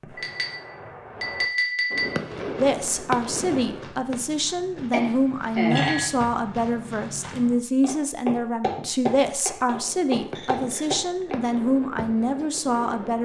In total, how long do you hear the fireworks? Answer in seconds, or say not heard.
8 s.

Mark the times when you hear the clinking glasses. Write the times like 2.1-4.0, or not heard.
0.1-2.1, 4.9-6.2, 10.3-11.4.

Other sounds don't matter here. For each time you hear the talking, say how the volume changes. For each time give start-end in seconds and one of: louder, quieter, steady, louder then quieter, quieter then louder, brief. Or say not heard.
2.5-13.2 steady.